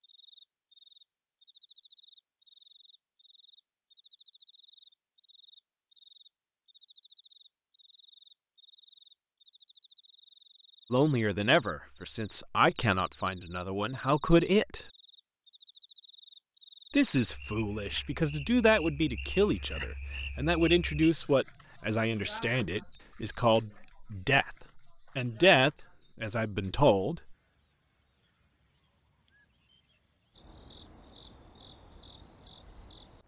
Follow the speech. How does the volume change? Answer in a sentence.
The volume of the speech stays about the same.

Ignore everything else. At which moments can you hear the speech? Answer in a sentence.
The speech can be heard from 10.9 to 14.8 s and from 16.9 to 27.4 s.